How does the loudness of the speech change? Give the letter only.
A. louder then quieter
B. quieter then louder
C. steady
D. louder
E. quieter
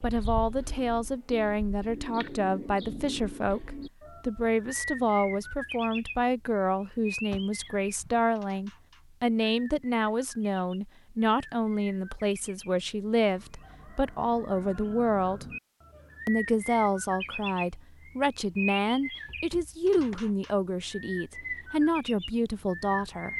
C.